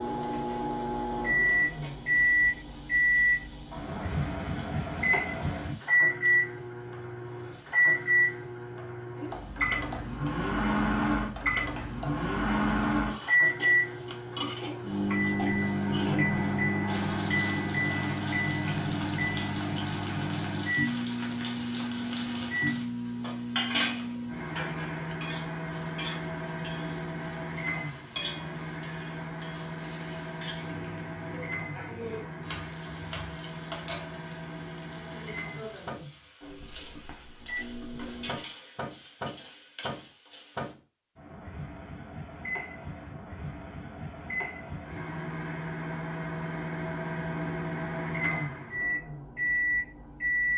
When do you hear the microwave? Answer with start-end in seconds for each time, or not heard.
0.0-50.5.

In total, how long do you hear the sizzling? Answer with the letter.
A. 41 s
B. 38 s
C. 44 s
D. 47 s
A.